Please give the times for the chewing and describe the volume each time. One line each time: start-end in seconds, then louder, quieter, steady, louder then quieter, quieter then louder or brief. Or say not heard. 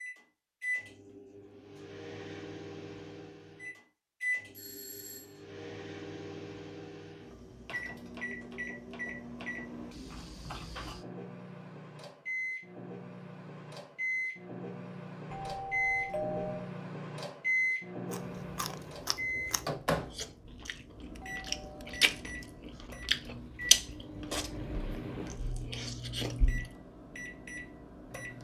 18.1-26.7 louder then quieter.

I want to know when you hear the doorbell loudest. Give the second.
16 s.